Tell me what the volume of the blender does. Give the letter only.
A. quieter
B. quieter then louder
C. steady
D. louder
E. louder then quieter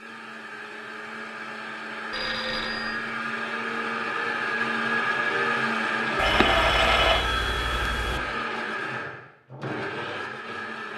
E.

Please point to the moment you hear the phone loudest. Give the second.
7 s.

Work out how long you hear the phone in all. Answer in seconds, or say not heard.
3 s.